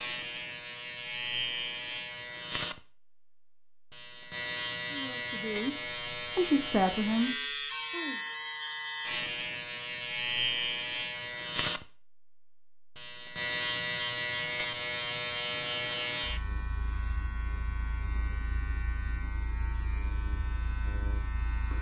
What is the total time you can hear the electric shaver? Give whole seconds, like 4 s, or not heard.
22 s.